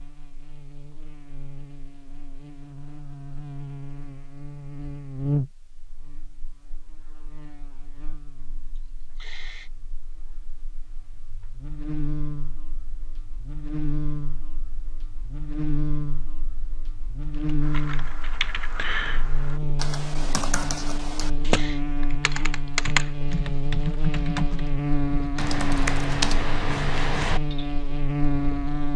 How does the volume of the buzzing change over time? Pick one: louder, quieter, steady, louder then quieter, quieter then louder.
quieter then louder.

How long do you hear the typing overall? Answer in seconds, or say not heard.
10 s.